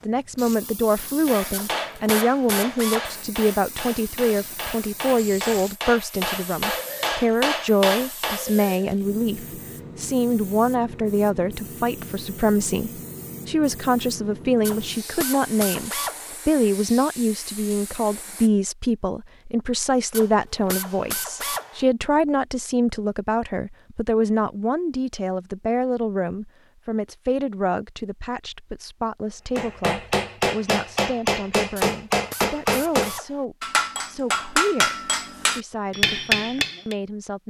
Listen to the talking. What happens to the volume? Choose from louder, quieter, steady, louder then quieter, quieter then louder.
quieter.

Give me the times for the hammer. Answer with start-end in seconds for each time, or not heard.
1.2-8.4, 29.6-37.0.